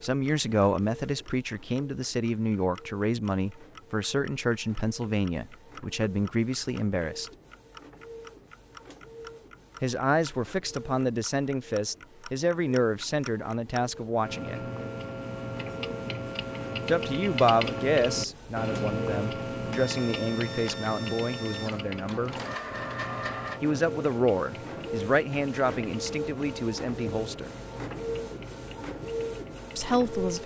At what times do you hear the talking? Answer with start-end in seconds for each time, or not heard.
0.0-7.3, 9.8-14.7, 16.9-22.4, 23.6-27.5, 29.8-30.4.